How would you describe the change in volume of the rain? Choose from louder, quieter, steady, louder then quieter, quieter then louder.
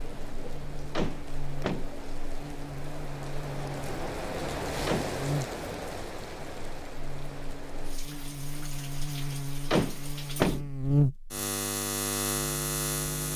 louder then quieter.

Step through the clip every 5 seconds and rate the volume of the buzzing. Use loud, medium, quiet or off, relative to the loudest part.
quiet, medium, loud.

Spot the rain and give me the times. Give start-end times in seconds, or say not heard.
0.0-10.7.